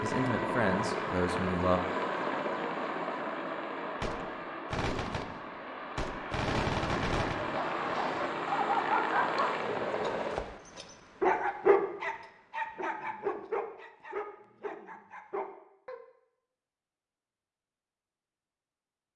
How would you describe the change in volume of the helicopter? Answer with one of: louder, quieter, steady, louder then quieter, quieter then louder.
quieter then louder.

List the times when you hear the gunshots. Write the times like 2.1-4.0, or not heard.
4.0-7.5.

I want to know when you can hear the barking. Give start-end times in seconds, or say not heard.
7.3-16.0.